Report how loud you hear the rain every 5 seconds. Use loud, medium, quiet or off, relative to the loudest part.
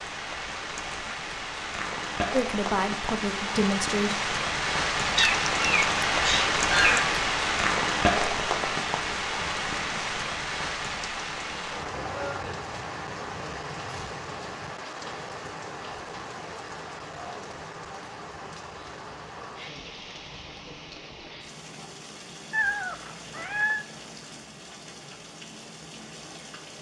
medium, loud, medium, quiet, quiet, quiet.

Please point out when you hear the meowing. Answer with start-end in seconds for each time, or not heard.
5.2-7.2, 22.5-23.9.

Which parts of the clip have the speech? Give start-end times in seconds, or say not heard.
2.3-4.2.